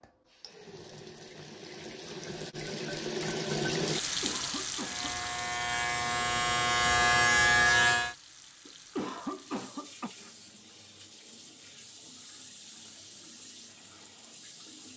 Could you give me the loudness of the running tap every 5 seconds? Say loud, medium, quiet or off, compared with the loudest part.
loud, medium, quiet.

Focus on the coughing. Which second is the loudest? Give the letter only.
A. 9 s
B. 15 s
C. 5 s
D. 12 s
A.